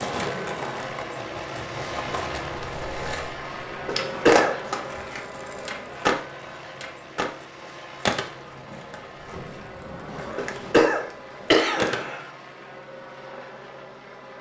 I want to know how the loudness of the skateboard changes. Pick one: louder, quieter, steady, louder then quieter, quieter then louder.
louder then quieter.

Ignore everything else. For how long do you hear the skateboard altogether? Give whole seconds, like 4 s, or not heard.
12 s.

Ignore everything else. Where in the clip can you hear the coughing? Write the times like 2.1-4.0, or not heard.
3.9-4.5, 10.3-12.2.